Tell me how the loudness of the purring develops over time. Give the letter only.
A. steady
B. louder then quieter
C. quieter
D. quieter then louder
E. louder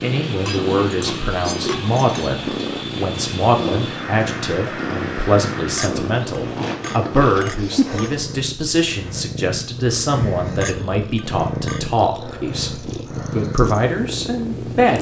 A.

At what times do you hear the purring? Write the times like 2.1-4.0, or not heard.
0.0-14.9.